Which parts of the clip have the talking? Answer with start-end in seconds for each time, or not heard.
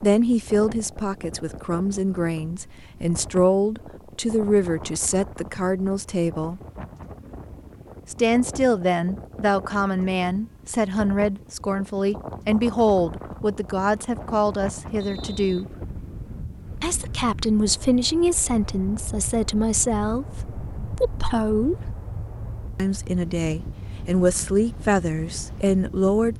0.0-6.6, 8.1-15.7, 16.8-21.9, 22.8-26.3.